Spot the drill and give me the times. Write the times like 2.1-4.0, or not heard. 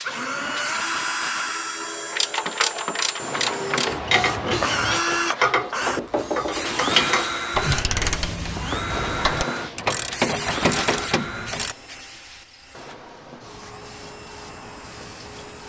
0.0-15.6.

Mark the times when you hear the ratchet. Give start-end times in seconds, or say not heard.
2.1-11.8.